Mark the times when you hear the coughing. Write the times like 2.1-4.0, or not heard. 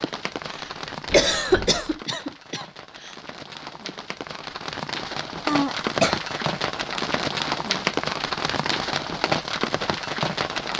0.5-3.1, 5.5-6.2.